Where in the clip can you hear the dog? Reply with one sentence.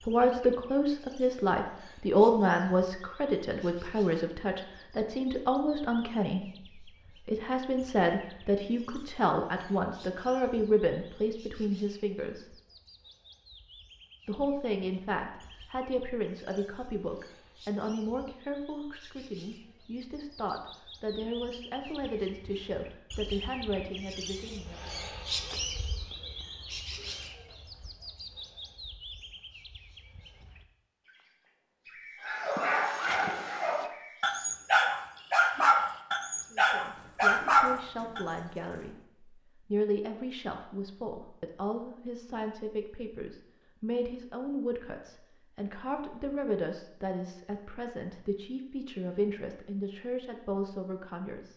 The dog can be heard from 32.2 to 38.2 s.